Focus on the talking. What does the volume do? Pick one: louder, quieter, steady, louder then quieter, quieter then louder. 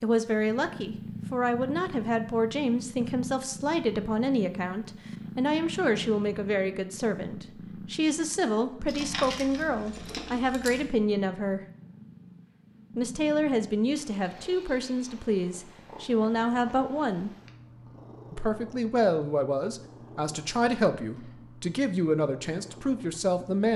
steady.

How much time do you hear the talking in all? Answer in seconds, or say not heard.
21 s.